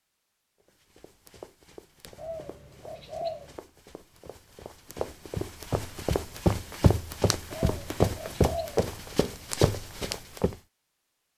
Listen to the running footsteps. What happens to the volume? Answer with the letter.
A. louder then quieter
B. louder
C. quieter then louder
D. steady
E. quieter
B.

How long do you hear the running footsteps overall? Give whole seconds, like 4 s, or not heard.
10 s.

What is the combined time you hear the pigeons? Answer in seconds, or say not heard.
3 s.